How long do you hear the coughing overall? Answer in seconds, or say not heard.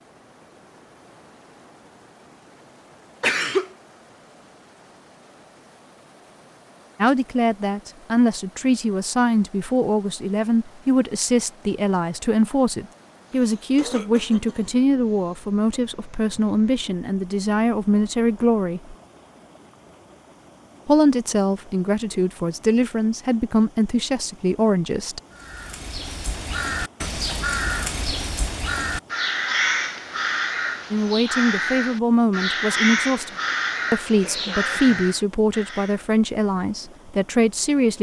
4 s.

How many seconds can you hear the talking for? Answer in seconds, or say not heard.
23 s.